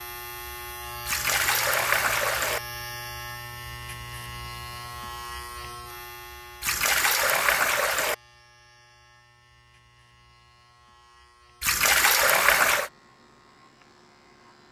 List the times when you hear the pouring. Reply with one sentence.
The pouring can be heard from 1.1 to 2.6 s, from 6.6 to 8.2 s and from 11.6 to 12.9 s.